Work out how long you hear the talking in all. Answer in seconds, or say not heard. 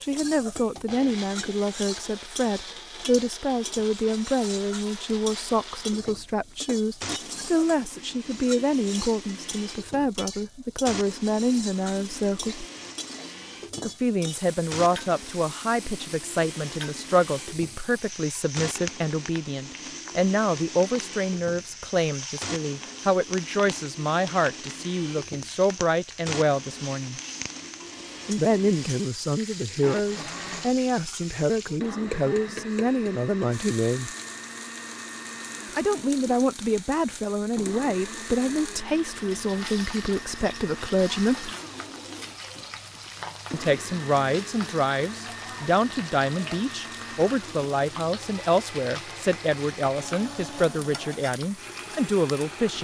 47 s.